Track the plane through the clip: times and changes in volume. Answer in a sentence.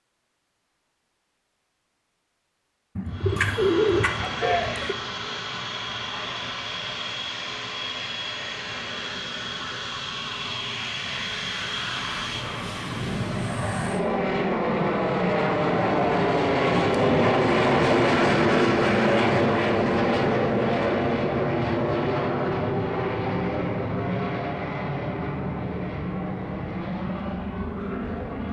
You can hear the plane from 3.0 to 28.4 s, getting louder then quieter.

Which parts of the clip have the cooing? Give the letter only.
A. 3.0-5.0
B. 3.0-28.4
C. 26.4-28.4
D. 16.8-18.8
A.